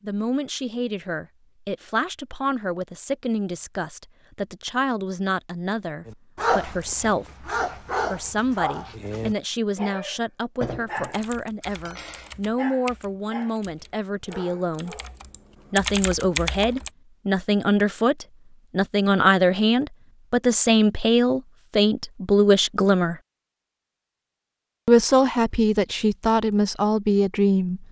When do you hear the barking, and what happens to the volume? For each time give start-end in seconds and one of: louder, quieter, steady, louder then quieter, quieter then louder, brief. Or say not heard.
6.0-15.2 quieter.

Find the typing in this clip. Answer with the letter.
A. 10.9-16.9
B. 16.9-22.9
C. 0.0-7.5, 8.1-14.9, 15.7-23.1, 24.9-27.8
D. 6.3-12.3
A.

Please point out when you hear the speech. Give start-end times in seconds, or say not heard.
0.0-7.5, 8.1-14.9, 15.7-23.1, 24.9-27.8.